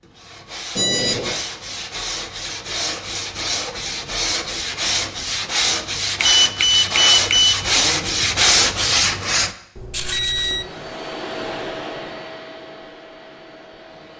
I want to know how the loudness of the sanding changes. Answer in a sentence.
The loudness of the sanding goes up.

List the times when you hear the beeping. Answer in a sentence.
You can hear the beeping from 0.8 to 1.4 s, from 6.2 to 7.5 s and from 9.8 to 10.7 s.